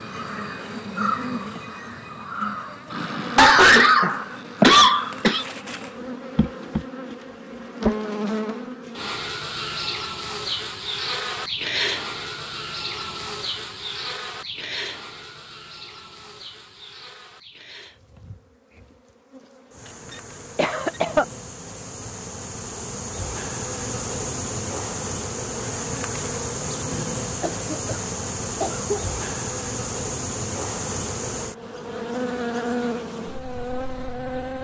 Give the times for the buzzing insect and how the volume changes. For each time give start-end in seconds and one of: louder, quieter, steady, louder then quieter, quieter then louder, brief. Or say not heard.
0.0-34.5 quieter then louder.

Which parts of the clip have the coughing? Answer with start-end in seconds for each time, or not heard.
2.9-5.5, 20.1-21.2, 27.4-29.0.